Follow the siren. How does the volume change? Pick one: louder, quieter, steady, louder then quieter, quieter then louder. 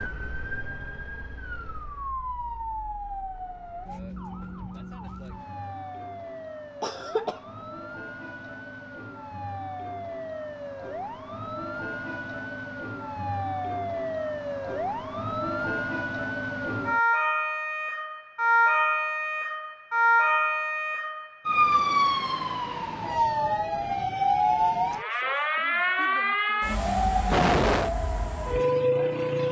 louder.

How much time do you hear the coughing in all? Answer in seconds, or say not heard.
2 s.